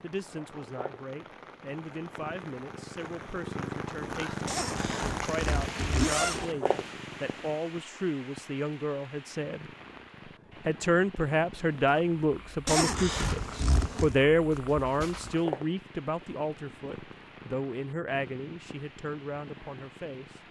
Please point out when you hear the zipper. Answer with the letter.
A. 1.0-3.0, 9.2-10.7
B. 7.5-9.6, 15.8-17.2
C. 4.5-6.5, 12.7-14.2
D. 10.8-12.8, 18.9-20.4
C.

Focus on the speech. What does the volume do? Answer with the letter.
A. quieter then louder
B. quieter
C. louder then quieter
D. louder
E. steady
C.